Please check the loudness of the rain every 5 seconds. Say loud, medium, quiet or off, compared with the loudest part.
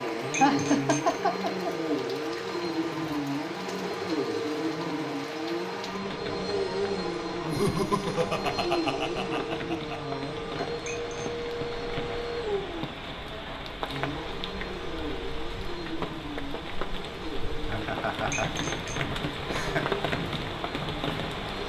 medium, medium, medium, loud, loud.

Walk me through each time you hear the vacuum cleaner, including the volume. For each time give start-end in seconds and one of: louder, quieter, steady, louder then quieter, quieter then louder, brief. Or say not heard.
0.0-21.6 quieter.